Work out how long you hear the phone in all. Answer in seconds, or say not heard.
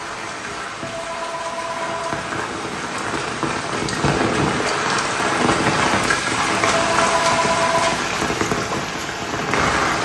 3 s.